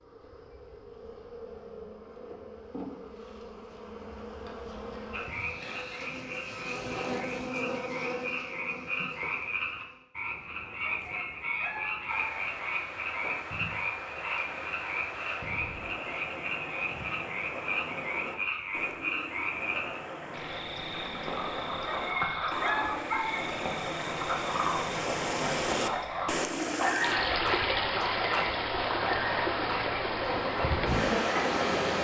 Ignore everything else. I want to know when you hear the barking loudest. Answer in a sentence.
The loudest moment of the barking is at 23 seconds.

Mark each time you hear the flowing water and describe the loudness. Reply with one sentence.
The flowing water can be heard from 12.1 to 31.9 s, getting louder.